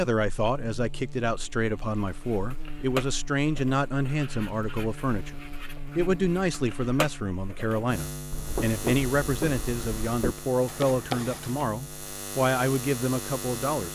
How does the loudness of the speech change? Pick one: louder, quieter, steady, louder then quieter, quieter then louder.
steady.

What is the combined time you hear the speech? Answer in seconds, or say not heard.
14 s.